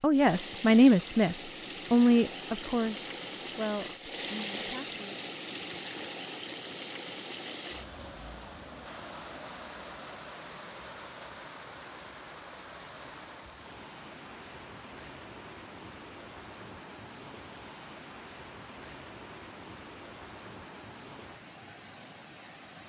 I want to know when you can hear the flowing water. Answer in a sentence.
The flowing water can be heard from 0.0 to 22.8 s.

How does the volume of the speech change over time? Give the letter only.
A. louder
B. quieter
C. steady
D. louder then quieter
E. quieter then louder
B.